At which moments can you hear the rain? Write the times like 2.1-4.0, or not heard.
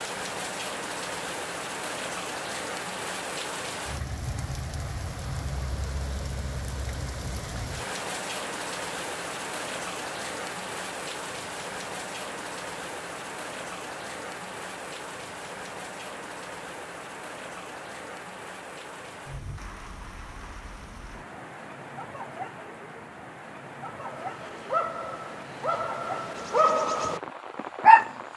0.0-28.3.